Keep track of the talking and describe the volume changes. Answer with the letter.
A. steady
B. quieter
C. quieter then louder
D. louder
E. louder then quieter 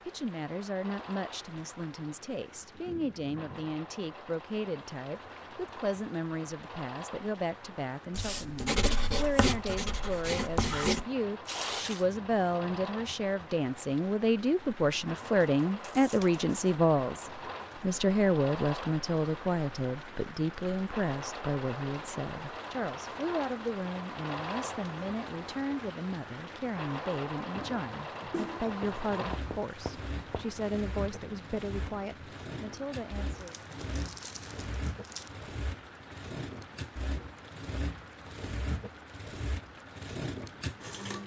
E.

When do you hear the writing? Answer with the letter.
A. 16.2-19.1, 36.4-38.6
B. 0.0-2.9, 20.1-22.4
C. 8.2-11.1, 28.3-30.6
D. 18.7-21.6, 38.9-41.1
C.